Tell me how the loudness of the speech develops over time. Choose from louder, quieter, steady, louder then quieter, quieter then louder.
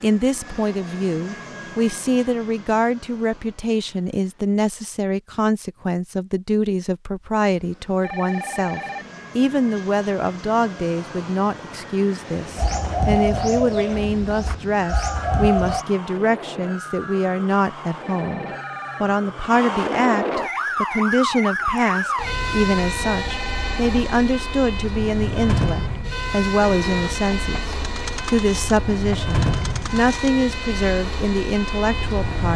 steady.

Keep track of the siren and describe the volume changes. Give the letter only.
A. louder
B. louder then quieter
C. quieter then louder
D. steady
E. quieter
A.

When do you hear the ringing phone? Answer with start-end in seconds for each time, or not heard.
8.0-9.2, 18.0-19.1, 23.2-23.9.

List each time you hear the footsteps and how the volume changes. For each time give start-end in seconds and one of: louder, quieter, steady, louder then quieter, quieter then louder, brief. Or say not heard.
not heard.